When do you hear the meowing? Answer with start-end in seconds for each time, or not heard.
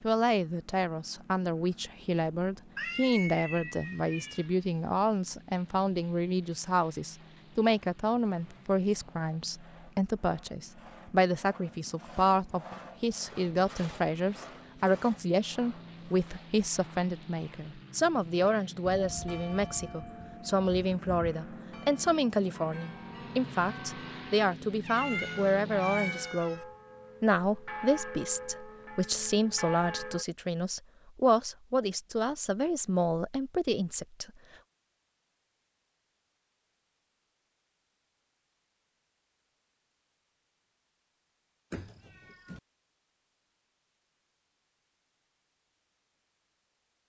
2.8-4.5, 24.8-26.6, 41.7-42.6.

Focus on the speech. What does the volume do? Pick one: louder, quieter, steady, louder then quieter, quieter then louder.
steady.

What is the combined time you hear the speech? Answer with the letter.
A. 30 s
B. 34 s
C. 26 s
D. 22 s
B.